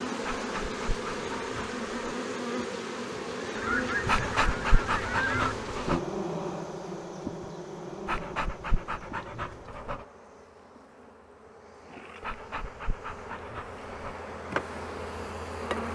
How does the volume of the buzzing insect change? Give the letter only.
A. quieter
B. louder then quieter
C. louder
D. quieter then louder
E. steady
D.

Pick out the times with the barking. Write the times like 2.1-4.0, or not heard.
0.2-2.1, 4.0-6.0, 8.1-10.1, 12.2-14.2.